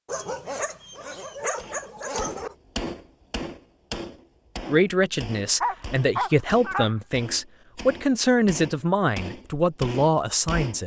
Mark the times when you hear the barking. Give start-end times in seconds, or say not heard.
0.1-2.5, 5.6-7.0.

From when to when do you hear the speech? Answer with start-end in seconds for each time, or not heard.
4.7-10.8.